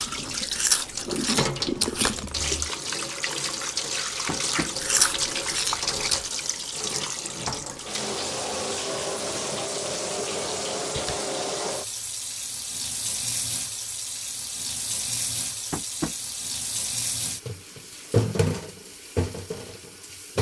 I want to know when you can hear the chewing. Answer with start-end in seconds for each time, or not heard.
0.0-2.5, 4.8-6.3.